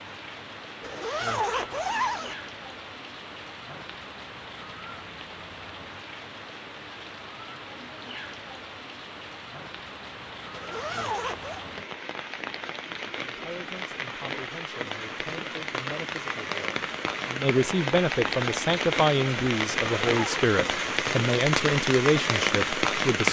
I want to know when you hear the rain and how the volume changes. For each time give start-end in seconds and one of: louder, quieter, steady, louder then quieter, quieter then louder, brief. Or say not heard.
0.0-23.2 louder.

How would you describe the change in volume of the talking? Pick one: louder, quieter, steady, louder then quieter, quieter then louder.
louder.